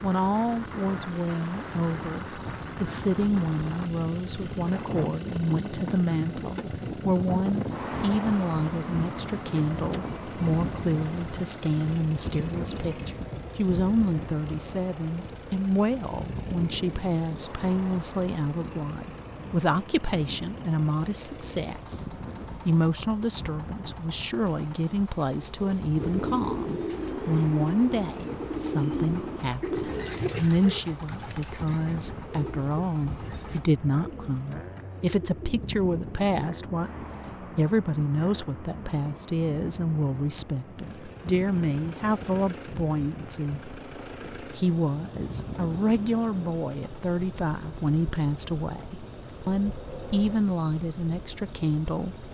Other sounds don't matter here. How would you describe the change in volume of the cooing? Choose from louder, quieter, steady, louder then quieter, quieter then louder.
quieter.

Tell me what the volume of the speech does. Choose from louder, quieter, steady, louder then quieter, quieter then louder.
steady.